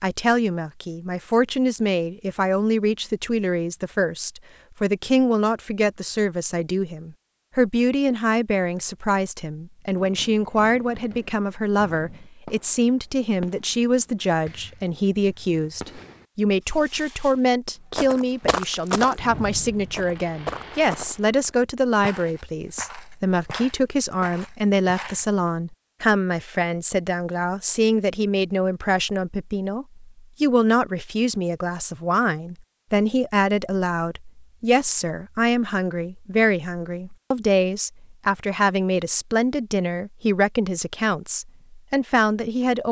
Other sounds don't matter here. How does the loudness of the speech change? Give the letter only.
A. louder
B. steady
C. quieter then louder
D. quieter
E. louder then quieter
B.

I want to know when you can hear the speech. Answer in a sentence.
You can hear the speech from 0.0 to 42.8 s.